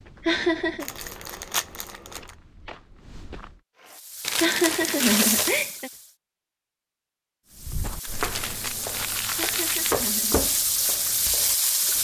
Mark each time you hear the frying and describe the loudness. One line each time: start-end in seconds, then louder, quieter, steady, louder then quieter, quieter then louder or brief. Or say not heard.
3.8-6.2 brief
7.5-11.9 louder.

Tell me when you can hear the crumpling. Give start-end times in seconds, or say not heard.
0.8-2.3, 4.2-5.6, 8.1-10.0.